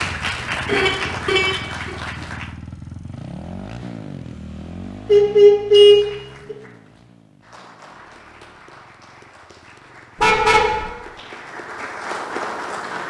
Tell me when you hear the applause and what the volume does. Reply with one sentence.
You can hear the applause briefly from 0.0 to 2.6 s; and from 5.8 to 13.0 s, getting louder.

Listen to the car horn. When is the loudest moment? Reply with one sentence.
The volume of the car horn peaks at 6 seconds.